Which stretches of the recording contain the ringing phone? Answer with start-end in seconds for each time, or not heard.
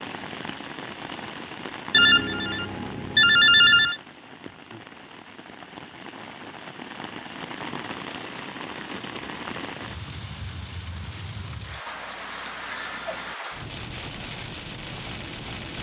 1.9-4.0, 11.8-13.3.